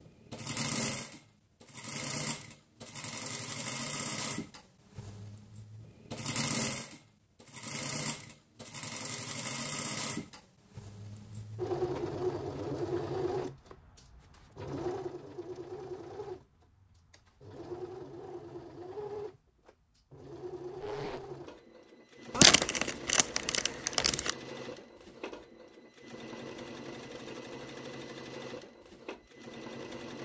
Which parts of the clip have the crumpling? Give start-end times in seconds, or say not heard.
22.4-24.3.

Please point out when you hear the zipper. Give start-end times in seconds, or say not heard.
20.8-21.3.